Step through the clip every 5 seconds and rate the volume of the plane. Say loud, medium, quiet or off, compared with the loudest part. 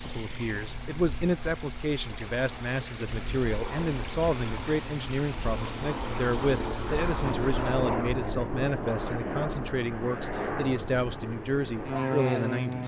medium, loud, loud.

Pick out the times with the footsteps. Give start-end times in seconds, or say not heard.
not heard.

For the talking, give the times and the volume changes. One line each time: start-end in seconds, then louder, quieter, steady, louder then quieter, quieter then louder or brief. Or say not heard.
0.0-12.8 steady.